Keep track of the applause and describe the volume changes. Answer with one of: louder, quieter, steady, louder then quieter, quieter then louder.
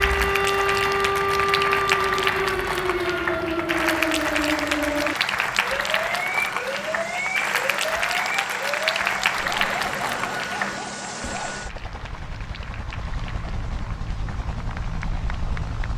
quieter.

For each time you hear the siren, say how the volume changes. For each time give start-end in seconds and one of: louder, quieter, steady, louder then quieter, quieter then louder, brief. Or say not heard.
0.0-11.6 quieter.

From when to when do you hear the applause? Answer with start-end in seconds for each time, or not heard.
0.0-15.8.